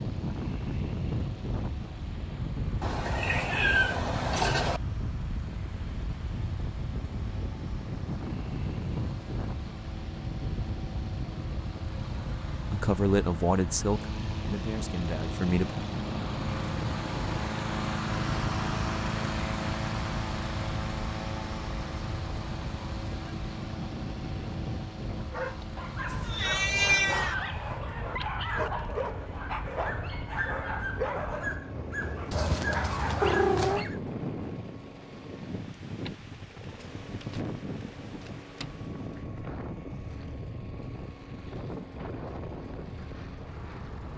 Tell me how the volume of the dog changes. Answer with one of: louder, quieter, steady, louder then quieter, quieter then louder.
steady.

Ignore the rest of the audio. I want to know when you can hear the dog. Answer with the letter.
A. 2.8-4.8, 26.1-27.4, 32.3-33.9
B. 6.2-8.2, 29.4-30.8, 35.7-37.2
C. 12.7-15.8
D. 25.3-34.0
D.